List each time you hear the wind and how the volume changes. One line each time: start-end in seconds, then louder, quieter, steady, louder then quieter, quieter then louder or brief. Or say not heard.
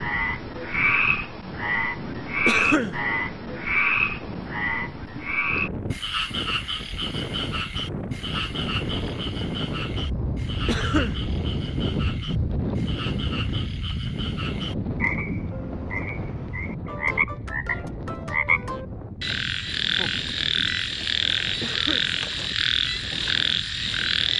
0.0-24.3 louder then quieter.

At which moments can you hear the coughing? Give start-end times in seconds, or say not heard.
2.5-3.0, 10.7-11.2, 21.6-22.1.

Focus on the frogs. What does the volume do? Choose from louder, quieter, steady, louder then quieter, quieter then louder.
quieter then louder.